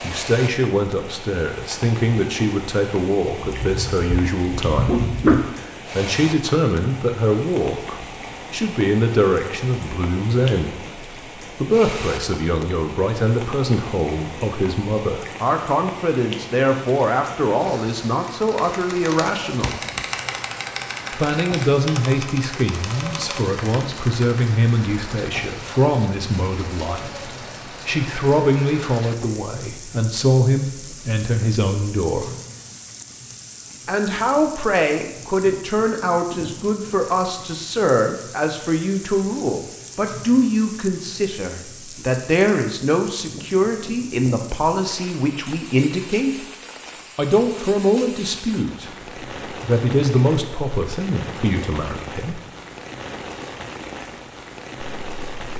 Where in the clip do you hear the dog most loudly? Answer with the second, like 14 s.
5 s.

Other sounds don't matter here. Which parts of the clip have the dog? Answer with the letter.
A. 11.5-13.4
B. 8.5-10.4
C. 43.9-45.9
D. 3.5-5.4
D.